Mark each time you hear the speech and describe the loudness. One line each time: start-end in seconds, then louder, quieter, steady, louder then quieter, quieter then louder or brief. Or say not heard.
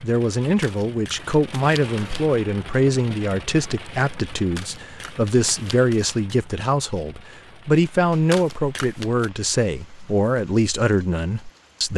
0.0-11.9 steady.